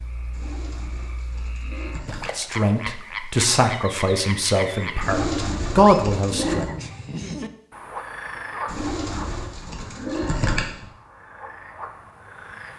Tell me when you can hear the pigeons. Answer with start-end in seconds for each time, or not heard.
0.3-2.5, 5.0-6.7, 8.7-10.8.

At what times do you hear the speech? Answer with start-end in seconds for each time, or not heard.
2.4-6.7.